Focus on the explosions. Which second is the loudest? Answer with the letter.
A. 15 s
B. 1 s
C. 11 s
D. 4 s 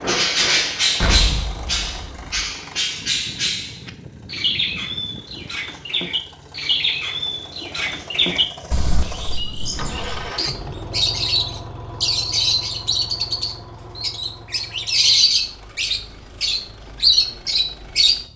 B.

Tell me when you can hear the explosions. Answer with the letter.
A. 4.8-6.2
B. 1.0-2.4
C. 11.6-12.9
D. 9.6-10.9
B.